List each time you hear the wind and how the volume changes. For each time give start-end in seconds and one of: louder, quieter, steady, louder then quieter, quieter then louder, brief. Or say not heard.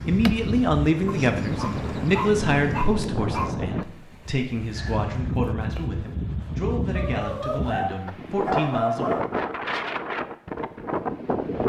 0.0-11.6 steady.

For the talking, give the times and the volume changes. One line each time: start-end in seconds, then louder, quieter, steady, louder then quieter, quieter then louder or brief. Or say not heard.
0.1-9.2 quieter.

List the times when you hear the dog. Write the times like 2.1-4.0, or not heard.
1.1-3.5, 7.0-9.3.